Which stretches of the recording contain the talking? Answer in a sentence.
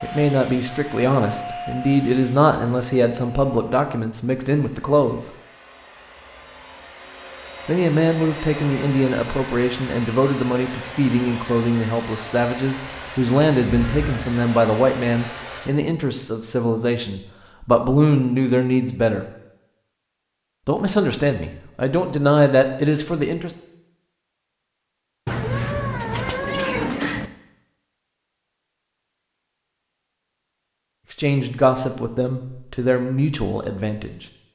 You can hear the talking from 0.0 to 5.3 s, from 7.7 to 19.2 s, from 20.6 to 23.5 s and from 31.1 to 34.2 s.